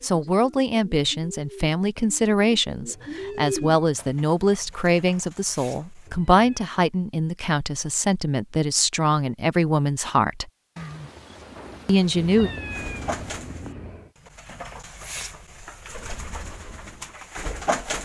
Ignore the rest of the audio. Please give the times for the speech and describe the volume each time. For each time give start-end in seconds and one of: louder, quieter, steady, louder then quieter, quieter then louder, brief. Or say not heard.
0.0-10.5 steady
11.8-12.5 brief.